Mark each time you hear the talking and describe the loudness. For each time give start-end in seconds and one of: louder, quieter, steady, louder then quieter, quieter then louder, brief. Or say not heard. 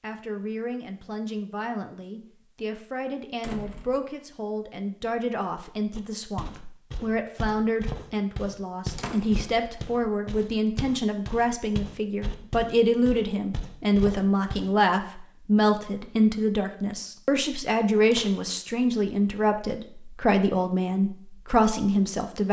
0.0-22.4 louder.